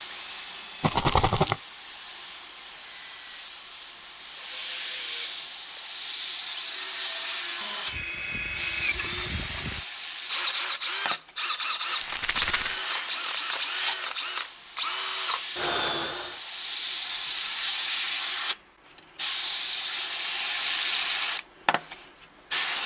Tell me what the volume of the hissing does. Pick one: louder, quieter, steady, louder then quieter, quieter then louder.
louder.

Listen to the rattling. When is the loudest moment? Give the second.
1 s.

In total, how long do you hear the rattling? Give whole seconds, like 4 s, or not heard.
2 s.